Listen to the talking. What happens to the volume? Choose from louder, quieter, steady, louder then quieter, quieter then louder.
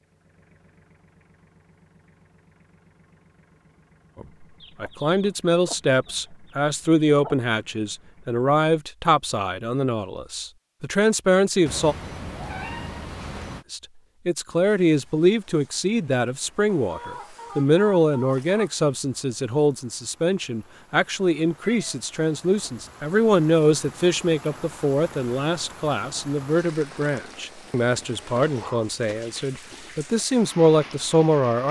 steady.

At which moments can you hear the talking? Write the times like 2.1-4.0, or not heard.
4.2-11.9, 13.7-31.6.